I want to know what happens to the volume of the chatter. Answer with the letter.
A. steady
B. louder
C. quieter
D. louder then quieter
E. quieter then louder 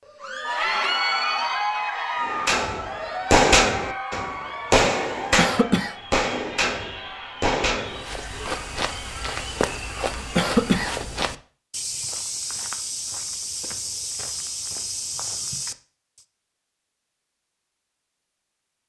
C.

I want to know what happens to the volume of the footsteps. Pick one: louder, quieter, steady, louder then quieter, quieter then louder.
steady.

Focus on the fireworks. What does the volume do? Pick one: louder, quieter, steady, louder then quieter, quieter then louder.
quieter.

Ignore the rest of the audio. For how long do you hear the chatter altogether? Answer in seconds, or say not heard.
11 s.